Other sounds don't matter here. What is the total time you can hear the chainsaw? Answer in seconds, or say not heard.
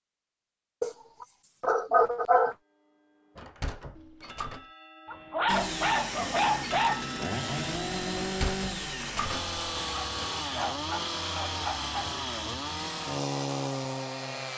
9 s.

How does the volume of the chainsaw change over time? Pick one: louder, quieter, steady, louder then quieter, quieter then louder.
steady.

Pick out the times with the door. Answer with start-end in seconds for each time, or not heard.
3.4-4.7, 8.2-9.6.